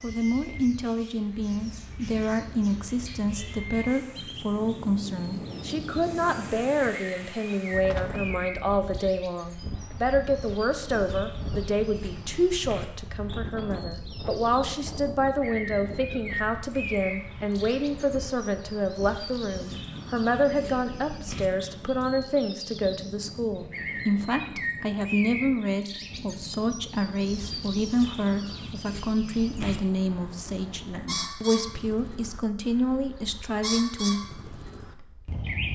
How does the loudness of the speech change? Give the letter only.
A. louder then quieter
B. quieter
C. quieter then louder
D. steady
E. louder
D.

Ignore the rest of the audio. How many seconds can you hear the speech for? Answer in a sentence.
You can hear the speech for 34 seconds altogether.